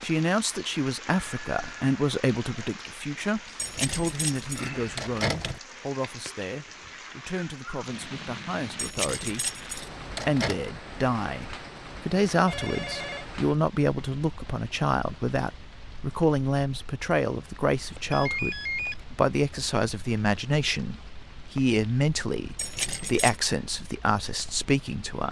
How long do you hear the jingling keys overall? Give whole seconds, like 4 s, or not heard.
5 s.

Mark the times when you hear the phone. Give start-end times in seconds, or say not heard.
1.2-1.9, 12.4-13.2, 18.1-19.1.